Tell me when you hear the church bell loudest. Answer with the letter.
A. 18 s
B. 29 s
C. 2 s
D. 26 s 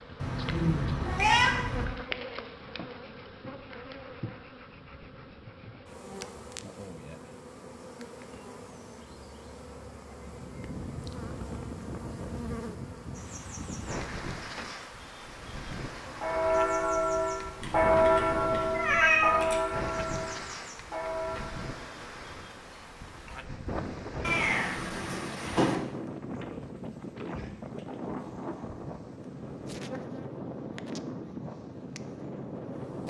A.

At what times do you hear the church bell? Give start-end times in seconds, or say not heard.
16.1-21.8.